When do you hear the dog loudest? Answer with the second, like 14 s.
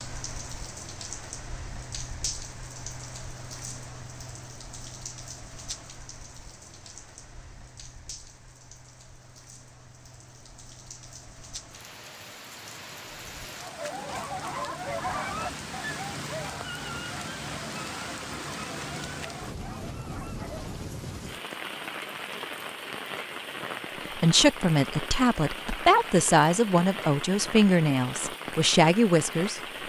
15 s.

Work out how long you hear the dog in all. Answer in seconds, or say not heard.
7 s.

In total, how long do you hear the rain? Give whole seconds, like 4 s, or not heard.
30 s.